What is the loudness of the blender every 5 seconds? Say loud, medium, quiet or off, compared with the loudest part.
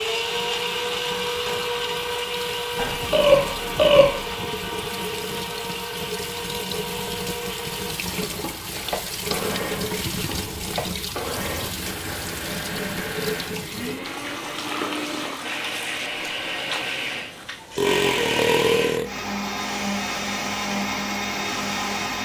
loud, medium, medium, loud, loud.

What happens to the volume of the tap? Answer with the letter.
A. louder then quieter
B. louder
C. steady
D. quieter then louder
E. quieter
A.